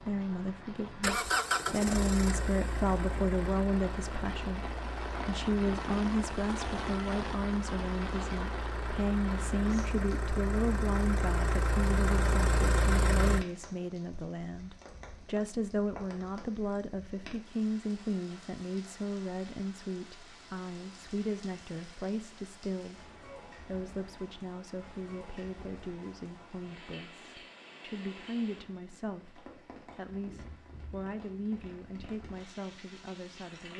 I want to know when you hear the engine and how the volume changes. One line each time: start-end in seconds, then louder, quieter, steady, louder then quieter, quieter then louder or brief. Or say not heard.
0.1-13.4 quieter then louder.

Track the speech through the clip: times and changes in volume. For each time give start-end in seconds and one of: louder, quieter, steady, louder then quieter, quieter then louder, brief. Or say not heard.
0.0-33.7 quieter.